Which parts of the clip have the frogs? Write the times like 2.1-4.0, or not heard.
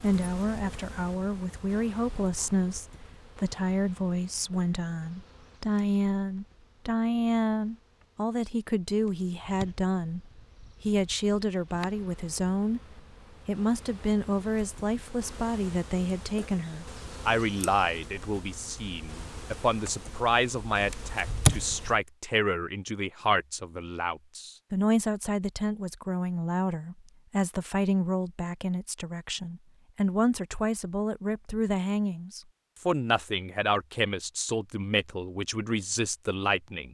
not heard.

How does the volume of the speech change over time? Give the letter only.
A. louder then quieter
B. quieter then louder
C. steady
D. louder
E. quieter
C.